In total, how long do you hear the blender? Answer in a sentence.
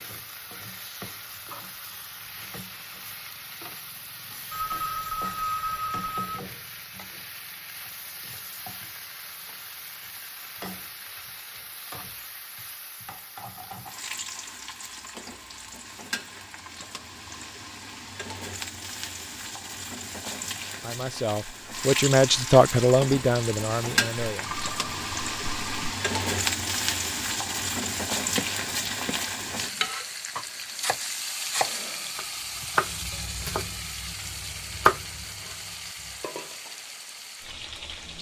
You can't hear the blender here.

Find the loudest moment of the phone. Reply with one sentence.
The loudest moment of the phone is at 6 seconds.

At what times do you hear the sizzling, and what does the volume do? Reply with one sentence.
The sizzling can be heard from 0.0 to 38.1 s, getting louder then quieter.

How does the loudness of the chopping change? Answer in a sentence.
The loudness of the chopping goes up.